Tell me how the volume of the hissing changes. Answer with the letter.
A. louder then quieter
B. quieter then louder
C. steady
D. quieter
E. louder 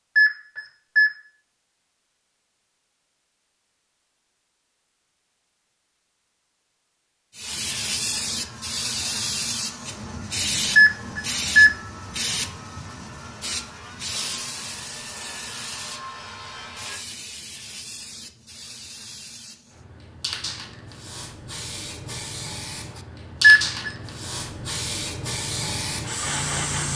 B.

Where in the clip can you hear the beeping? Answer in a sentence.
You can hear the beeping from 0.1 to 1.1 s, from 10.8 to 11.7 s and from 23.4 to 23.9 s.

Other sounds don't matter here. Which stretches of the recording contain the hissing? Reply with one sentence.
You can hear the hissing from 7.3 to 26.9 s.